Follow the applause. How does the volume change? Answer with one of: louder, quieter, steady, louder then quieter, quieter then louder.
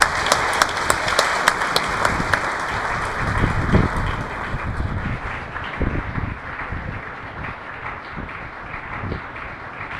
quieter.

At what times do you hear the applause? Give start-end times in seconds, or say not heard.
0.0-9.9.